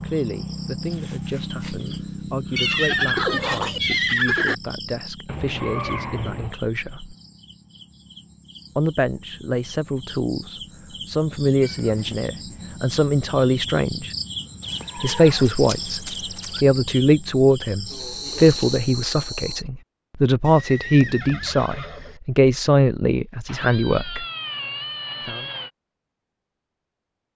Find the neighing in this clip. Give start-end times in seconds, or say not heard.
2.5-4.5, 14.6-16.6, 20.4-22.2.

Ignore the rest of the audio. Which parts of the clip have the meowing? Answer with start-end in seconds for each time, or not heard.
5.2-6.5, 11.6-12.3, 23.4-25.7.